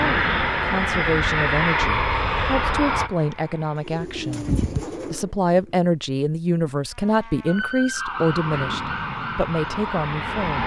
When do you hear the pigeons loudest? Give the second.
5 s.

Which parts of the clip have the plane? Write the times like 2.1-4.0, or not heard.
0.0-4.0, 8.1-10.6.